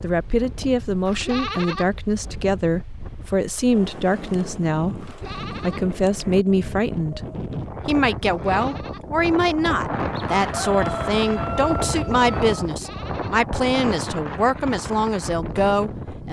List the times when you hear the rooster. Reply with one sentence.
The rooster can be heard from 10.3 to 12.6 s.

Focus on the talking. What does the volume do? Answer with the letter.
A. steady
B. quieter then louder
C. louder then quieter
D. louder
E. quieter
A.